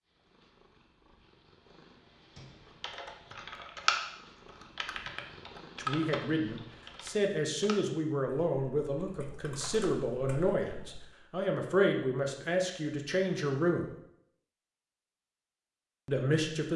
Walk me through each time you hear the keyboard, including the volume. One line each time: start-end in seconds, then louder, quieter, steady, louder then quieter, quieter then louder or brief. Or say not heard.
2.8-11.0 quieter.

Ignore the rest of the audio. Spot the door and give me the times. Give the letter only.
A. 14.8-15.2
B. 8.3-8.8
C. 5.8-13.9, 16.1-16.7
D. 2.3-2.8
D.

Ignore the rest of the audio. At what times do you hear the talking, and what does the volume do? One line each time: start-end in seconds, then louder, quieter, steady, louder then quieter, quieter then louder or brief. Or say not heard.
5.8-13.9 steady
16.1-16.7 brief.